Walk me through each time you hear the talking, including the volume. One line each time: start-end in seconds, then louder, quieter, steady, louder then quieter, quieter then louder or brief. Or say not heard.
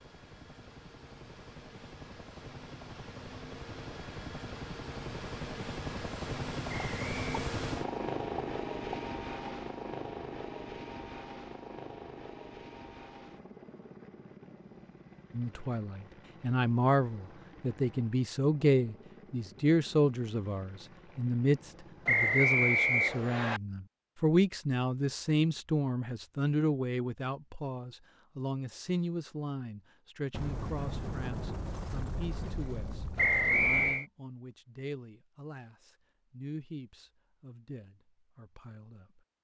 15.3-39.2 quieter.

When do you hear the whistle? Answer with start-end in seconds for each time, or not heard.
6.7-7.3, 22.1-23.6, 33.1-34.0.